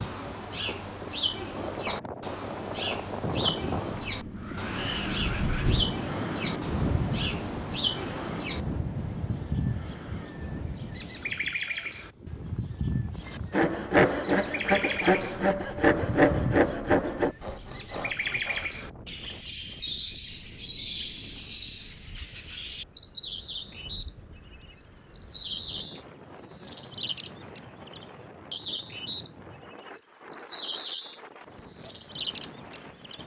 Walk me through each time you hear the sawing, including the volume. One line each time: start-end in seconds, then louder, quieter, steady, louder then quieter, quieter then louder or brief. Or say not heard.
13.2-18.9 quieter.